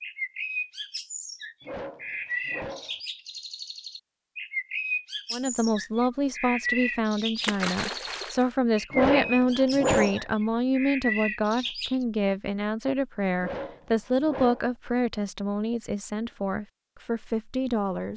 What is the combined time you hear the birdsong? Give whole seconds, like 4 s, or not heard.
12 s.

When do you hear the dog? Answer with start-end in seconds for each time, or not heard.
1.6-3.0, 8.9-10.2, 13.3-14.7.